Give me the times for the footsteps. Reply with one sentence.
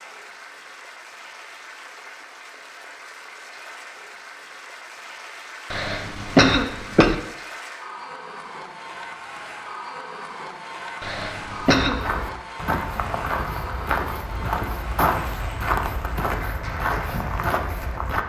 The footsteps can be heard from 11.8 to 18.2 s.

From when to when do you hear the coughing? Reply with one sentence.
The coughing can be heard from 5.7 to 7.2 s and from 11.0 to 12.0 s.